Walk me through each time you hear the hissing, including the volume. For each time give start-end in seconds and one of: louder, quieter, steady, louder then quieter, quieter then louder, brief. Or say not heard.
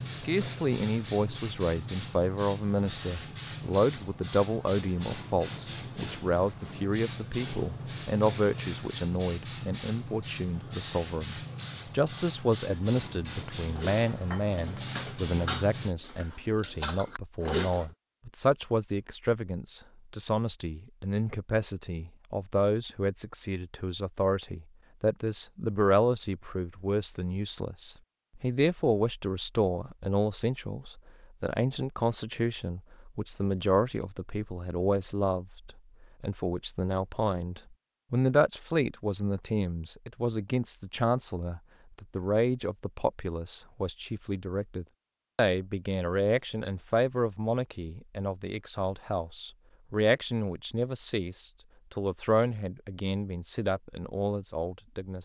0.0-15.9 steady.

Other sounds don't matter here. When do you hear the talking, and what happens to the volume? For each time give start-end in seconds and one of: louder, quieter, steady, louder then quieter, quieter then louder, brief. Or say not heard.
0.0-55.2 steady.